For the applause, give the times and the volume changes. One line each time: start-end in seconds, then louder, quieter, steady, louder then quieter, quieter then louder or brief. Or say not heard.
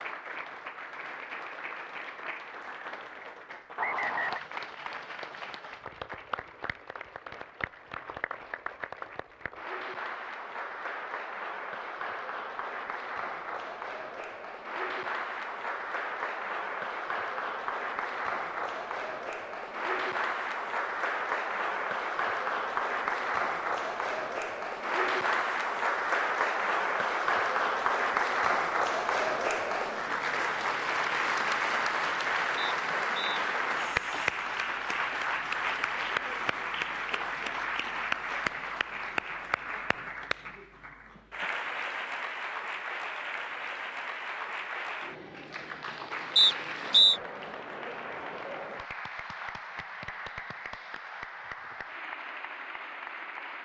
0.0-53.5 louder then quieter.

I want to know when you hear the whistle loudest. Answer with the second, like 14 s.
47 s.